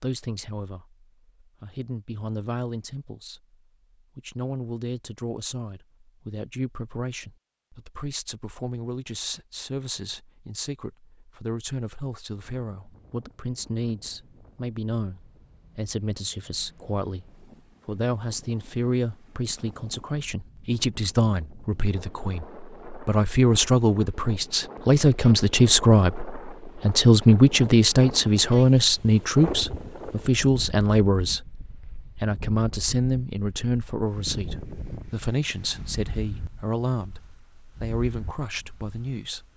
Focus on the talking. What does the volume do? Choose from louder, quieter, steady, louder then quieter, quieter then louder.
louder then quieter.